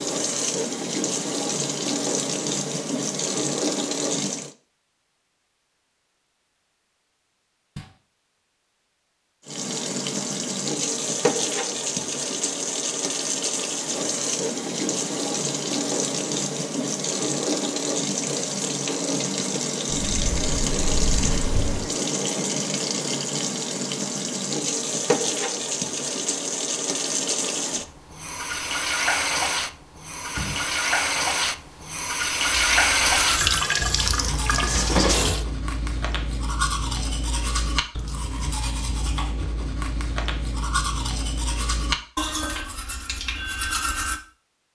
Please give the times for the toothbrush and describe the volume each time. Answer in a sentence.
You can hear the toothbrush from 32.5 to 44.2 s, at a steady volume.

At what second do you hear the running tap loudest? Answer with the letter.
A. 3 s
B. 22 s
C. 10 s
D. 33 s
D.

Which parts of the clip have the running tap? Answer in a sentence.
The running tap can be heard from 0.0 to 4.5 s and from 9.4 to 35.5 s.